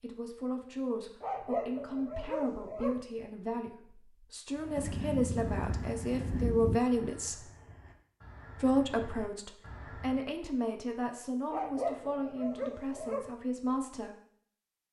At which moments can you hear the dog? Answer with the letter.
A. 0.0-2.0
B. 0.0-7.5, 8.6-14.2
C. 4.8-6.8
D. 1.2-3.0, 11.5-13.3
D.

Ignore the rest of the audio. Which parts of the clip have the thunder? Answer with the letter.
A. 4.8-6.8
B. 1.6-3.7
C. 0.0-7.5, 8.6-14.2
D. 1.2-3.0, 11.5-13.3
A.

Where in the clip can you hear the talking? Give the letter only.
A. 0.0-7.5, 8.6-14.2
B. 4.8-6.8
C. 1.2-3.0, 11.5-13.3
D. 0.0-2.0
A.